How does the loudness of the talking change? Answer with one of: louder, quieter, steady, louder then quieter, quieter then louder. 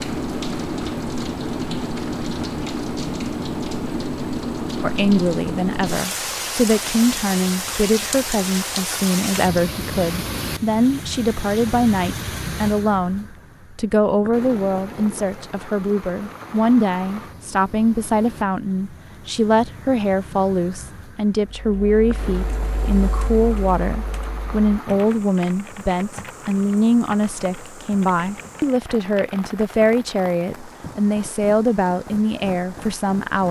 steady.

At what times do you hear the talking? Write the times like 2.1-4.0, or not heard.
4.8-33.4.